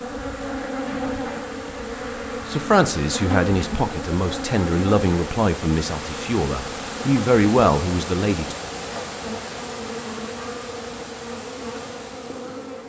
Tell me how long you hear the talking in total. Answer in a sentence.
The talking can be heard for 6 seconds in total.